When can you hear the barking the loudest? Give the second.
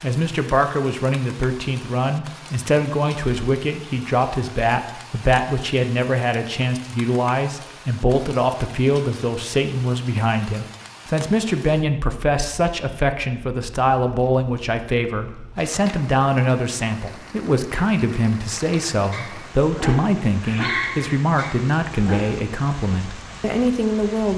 21 s.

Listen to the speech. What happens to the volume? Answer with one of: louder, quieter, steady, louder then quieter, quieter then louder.
steady.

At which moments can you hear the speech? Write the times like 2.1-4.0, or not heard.
0.0-24.3.